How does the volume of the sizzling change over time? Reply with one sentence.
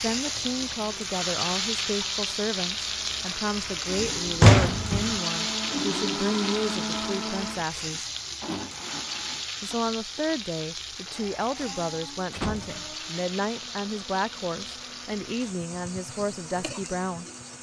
The loudness of the sizzling goes down.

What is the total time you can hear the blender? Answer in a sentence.
You can hear the blender for 17 seconds altogether.